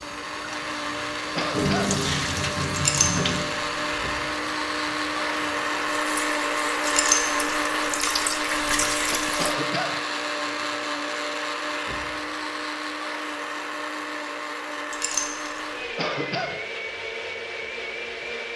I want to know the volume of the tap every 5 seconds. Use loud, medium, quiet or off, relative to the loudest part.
loud, loud, off, off.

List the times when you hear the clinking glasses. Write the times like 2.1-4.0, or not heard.
2.8-3.3, 6.8-7.5, 14.9-15.6.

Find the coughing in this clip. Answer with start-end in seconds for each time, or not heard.
1.4-1.9, 9.3-9.9, 15.9-16.6.